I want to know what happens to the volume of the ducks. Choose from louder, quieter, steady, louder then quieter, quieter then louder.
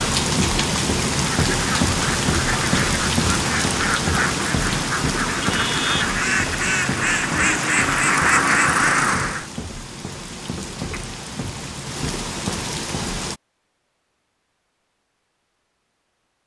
louder.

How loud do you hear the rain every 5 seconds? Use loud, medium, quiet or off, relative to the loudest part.
loud, medium, medium, off.